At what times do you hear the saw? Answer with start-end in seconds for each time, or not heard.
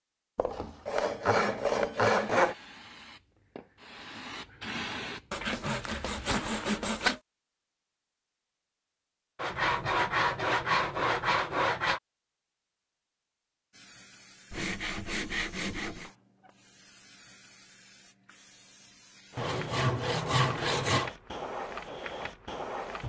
0.3-2.5, 5.3-7.2, 9.3-12.0, 14.5-16.1, 19.4-21.1.